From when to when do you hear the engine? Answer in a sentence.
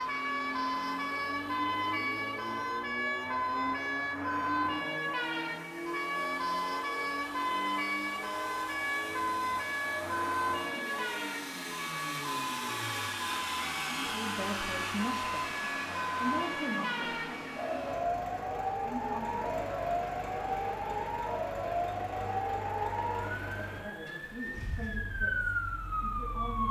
You can hear the engine from 0.0 to 26.6 s.